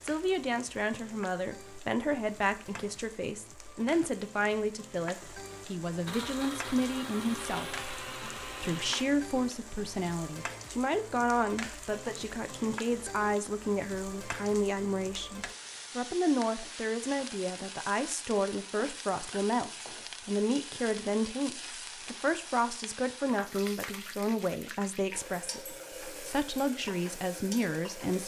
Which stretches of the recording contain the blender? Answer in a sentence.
The blender can be heard from 6.0 to 9.1 s.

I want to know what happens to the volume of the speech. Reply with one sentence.
The loudness of the speech stays about the same.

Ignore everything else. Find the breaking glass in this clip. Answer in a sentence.
You can't hear the breaking glass here.